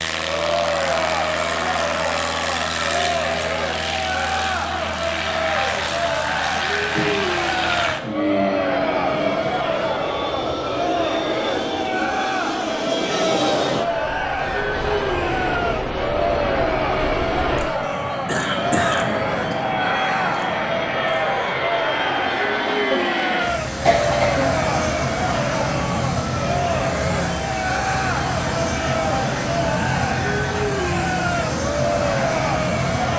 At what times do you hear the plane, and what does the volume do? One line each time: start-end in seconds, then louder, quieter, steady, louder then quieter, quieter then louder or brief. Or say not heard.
0.0-33.1 steady.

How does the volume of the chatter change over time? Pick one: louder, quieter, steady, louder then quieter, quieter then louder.
steady.